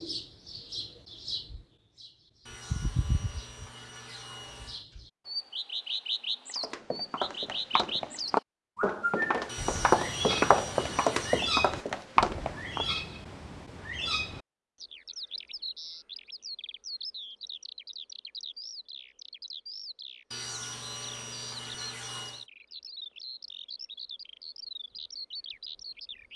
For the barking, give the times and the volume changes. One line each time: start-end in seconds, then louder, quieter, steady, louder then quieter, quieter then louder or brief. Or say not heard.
not heard.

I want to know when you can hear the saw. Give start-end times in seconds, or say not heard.
2.5-4.8, 9.4-11.6, 20.3-22.4.